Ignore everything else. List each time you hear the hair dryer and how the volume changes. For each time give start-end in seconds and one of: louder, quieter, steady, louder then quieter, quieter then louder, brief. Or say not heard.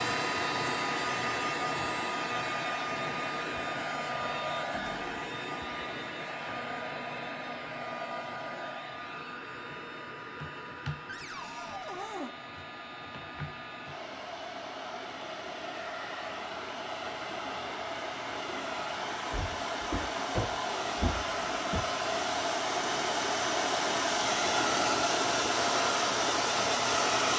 0.0-27.3 quieter then louder.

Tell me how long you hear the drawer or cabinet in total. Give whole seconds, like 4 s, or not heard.
4 s.